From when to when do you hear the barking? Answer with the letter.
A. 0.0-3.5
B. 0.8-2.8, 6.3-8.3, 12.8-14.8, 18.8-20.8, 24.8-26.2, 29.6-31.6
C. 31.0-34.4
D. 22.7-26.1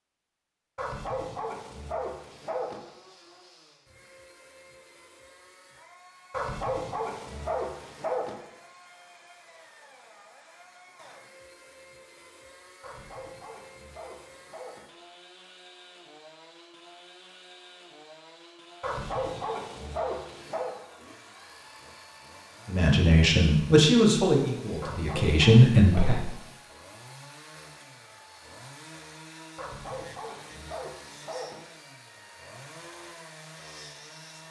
B.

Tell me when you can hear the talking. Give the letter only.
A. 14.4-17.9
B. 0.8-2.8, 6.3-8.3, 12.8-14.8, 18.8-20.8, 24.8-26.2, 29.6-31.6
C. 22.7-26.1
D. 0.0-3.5
C.